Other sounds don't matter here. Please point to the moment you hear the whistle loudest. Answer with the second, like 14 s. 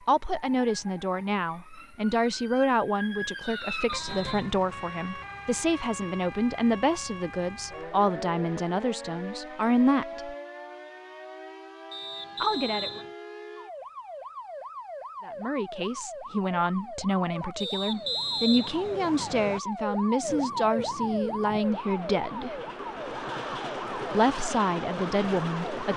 18 s.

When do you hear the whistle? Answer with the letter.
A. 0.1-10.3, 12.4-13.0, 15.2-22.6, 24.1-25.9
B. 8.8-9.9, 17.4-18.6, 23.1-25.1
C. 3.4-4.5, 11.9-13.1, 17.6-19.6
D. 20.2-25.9
C.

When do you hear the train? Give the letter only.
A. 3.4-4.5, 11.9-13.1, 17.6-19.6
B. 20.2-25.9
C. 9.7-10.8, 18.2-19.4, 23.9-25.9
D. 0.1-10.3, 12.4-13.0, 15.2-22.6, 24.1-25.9
B.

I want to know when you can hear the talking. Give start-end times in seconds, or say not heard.
0.1-10.3, 12.4-13.0, 15.2-22.6, 24.1-25.9.